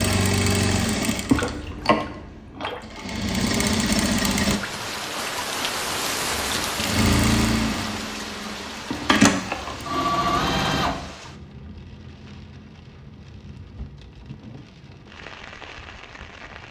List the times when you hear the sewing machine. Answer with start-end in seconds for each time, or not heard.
0.0-4.6, 6.3-11.2.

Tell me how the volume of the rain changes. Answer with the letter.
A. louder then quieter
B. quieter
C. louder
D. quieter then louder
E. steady
A.